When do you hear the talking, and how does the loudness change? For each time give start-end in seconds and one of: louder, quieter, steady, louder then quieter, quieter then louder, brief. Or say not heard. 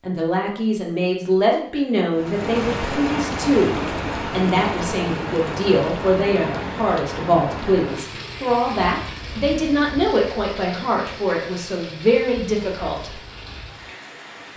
0.0-13.2 steady.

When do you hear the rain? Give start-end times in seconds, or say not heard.
2.1-14.5.